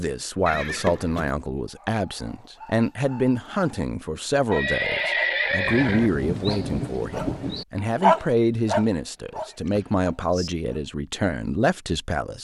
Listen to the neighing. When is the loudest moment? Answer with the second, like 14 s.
5 s.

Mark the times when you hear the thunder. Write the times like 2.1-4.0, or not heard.
5.6-7.7.